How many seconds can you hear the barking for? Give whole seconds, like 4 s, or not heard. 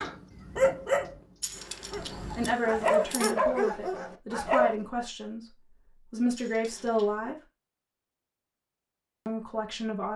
5 s.